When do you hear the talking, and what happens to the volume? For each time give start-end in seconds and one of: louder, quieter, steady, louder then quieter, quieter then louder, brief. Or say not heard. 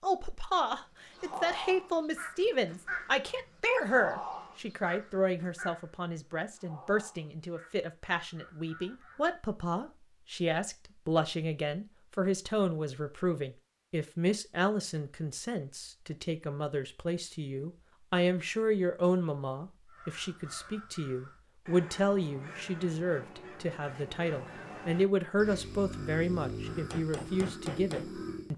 0.0-28.5 steady.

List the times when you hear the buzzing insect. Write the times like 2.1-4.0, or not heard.
not heard.